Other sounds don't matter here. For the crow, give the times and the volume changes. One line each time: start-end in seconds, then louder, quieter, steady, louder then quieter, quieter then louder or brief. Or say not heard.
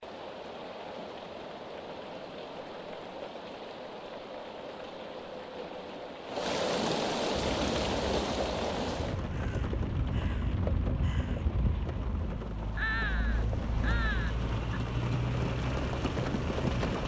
7.3-14.8 louder.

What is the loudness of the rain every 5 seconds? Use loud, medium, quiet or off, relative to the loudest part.
medium, loud, medium, loud.